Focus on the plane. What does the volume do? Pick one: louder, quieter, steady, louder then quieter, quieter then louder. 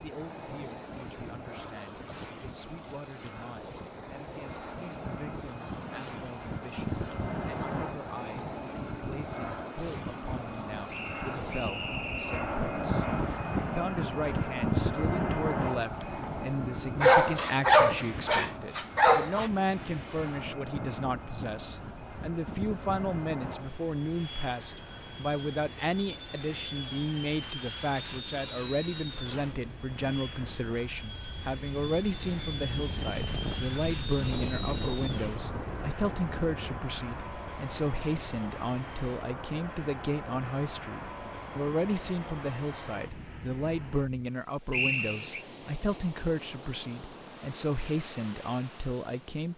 louder then quieter.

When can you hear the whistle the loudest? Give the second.
45 s.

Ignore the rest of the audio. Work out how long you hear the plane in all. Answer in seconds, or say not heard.
44 s.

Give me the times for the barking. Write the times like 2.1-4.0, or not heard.
17.0-19.5.